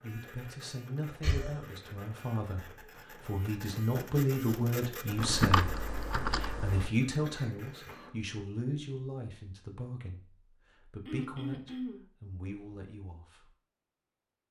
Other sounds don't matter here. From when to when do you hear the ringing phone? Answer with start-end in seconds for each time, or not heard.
not heard.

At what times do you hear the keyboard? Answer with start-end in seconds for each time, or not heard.
5.2-6.9.